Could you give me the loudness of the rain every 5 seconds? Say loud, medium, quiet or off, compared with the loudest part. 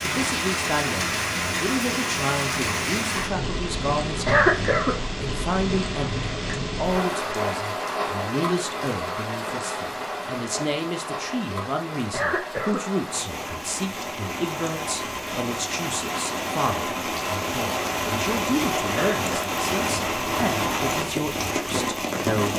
loud, loud, medium, loud, loud.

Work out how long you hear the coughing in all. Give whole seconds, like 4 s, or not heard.
2 s.